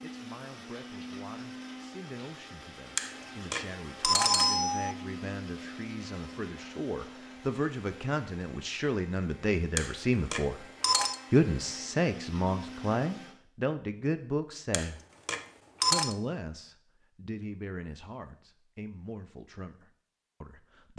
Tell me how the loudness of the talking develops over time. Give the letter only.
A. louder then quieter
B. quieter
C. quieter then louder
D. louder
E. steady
A.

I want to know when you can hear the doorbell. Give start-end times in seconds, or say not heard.
3.0-5.0, 9.8-11.2, 14.7-16.1.